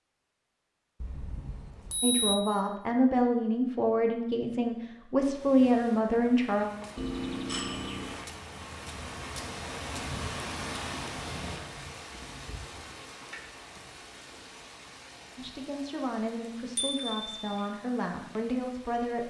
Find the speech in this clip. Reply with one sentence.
The speech can be heard from 2.0 to 6.7 s and from 15.3 to 19.2 s.